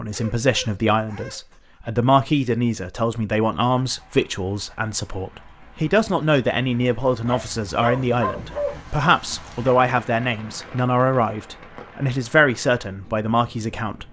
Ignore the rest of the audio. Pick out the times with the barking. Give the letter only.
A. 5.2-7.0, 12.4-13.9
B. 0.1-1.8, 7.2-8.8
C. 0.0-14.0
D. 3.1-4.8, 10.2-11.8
B.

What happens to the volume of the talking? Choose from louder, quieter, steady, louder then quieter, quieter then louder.
steady.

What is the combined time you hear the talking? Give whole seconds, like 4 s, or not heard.
14 s.